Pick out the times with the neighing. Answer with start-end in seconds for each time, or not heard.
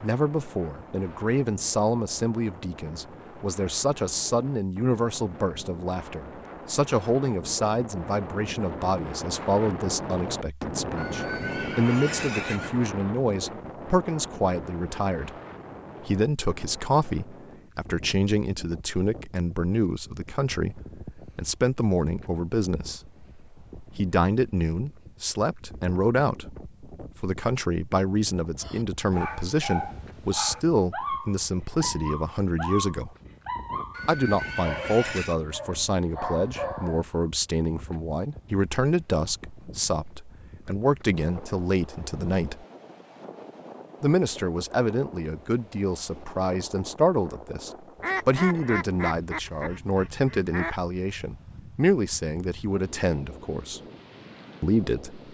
10.9-12.8, 33.9-35.4.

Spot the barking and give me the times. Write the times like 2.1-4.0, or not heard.
28.6-37.0.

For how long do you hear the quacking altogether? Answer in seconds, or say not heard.
3 s.